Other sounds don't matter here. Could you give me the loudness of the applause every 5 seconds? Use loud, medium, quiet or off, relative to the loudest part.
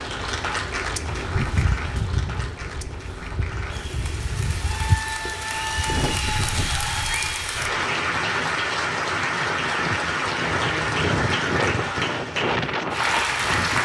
medium, loud, loud.